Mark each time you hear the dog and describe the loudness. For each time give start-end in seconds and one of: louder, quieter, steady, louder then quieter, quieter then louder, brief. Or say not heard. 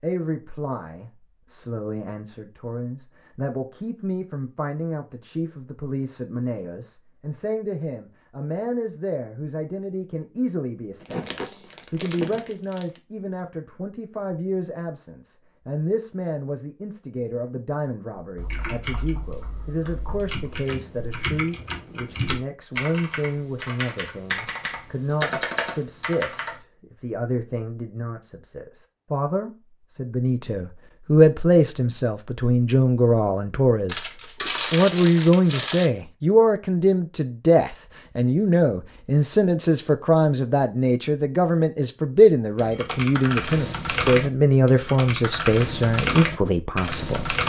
not heard.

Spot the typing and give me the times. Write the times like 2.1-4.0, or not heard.
18.1-26.6, 42.5-47.4.